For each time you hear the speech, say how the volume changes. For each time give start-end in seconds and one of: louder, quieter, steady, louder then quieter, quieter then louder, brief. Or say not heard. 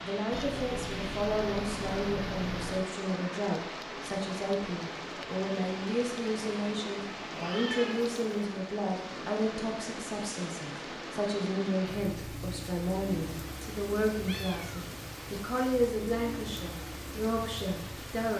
0.0-18.3 steady.